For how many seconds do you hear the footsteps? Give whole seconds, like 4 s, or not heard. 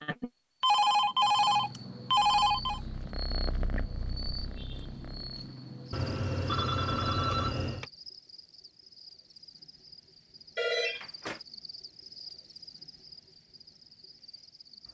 not heard.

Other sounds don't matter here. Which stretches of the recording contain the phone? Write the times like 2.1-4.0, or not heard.
0.6-2.8, 5.9-7.8, 10.6-11.4.